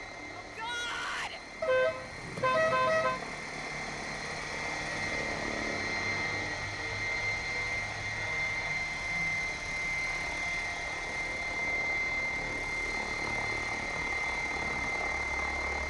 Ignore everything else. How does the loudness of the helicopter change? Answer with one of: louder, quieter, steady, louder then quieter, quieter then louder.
louder.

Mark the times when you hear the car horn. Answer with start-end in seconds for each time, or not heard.
1.6-3.2.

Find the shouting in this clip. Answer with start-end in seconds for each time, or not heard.
0.3-1.4.